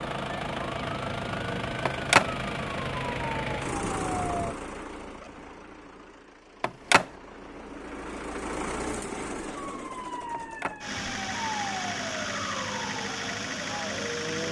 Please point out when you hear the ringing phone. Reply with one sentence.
The ringing phone can be heard from 1.9 to 2.3 s, from 6.6 to 7.0 s and from 10.3 to 10.8 s.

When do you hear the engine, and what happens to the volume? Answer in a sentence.
You can hear the engine from 0.0 to 14.4 s, getting quieter then louder.